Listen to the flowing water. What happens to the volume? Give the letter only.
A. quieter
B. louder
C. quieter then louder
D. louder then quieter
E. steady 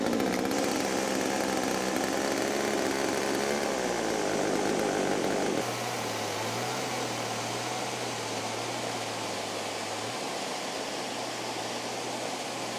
E.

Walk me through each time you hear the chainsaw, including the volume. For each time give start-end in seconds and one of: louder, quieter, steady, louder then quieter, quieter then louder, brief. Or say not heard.
0.0-12.7 quieter.